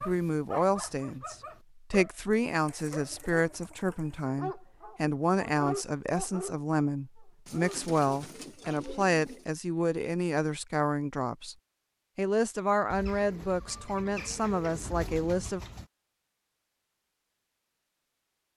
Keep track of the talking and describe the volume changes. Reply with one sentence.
The loudness of the talking stays about the same.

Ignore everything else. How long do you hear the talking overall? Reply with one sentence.
You can hear the talking for 15 seconds altogether.